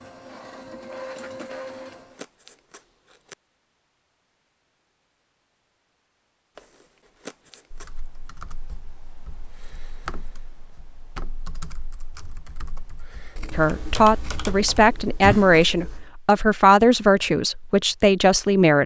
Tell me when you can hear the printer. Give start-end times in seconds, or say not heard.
0.0-2.2.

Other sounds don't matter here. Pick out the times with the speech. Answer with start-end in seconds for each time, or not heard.
13.5-18.8.